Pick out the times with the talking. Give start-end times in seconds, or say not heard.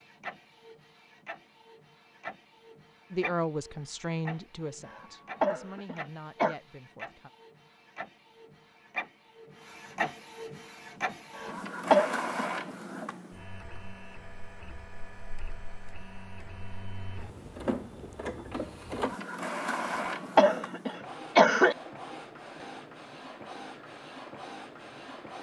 3.1-7.3.